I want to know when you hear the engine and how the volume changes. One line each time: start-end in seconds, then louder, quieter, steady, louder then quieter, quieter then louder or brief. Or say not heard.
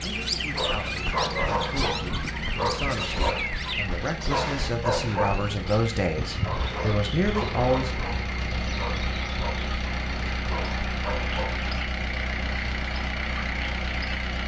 0.0-14.4 louder.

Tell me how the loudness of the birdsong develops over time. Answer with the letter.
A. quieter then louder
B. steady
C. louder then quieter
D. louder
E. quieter
E.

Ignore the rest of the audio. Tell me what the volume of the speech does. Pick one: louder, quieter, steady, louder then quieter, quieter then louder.
louder.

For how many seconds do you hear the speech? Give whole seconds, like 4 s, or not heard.
8 s.